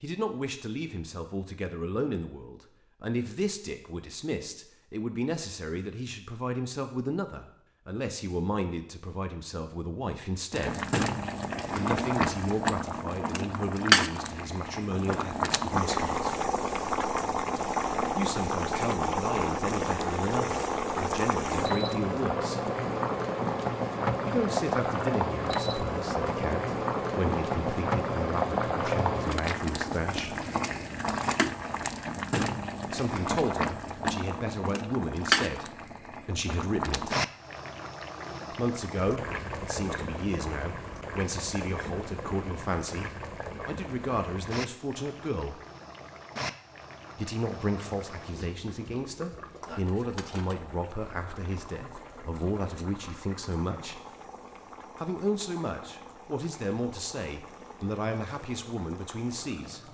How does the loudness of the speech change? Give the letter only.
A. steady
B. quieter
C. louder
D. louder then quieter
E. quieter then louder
A.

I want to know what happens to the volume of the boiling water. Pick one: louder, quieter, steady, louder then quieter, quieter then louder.
quieter.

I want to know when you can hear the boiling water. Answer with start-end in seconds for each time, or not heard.
10.5-59.8.